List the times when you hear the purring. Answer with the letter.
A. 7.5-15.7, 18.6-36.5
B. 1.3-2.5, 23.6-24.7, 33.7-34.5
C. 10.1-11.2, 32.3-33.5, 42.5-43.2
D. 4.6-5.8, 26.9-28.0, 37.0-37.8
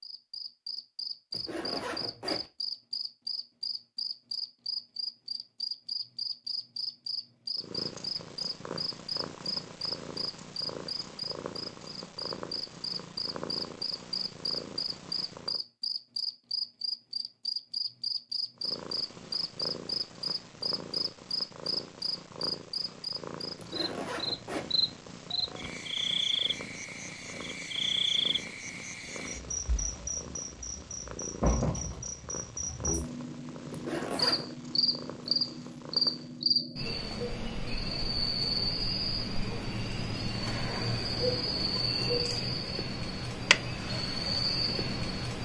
A.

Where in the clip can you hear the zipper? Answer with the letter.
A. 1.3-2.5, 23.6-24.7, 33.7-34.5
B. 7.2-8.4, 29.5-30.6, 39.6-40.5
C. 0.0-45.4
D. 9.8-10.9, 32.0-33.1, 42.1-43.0
A.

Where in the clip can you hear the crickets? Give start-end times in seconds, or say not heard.
0.0-45.4.